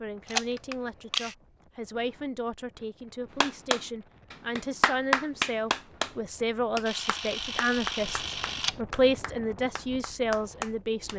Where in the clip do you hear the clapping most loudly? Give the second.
5 s.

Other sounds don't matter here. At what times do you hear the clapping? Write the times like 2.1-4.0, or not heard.
3.4-6.2, 6.8-11.1.